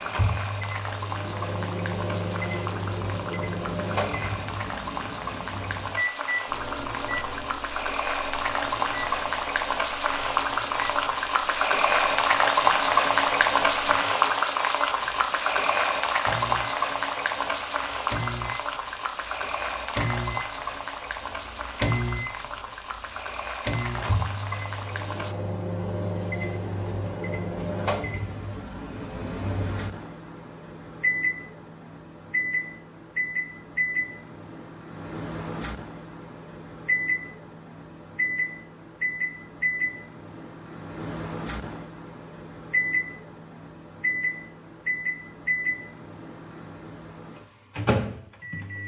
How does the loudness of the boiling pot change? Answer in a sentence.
The loudness of the boiling pot goes up, then down.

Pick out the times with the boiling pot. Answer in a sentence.
You can hear the boiling pot from 0.0 to 25.4 s.